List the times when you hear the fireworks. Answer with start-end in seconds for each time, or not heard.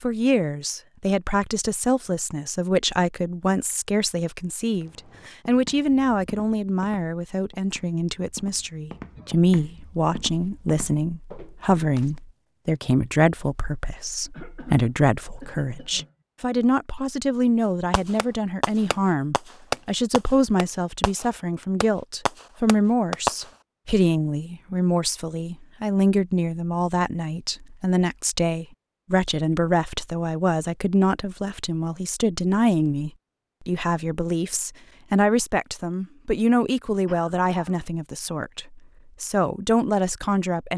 17.9-23.5.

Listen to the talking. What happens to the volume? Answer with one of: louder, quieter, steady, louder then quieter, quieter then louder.
steady.